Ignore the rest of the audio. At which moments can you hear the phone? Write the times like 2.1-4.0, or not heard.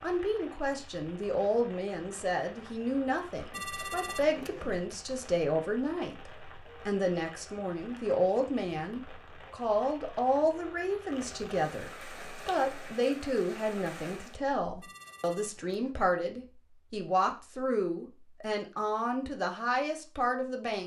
3.5-4.8, 14.8-15.9.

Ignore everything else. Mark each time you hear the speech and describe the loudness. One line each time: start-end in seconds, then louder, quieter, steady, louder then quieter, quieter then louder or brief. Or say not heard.
0.0-20.8 steady.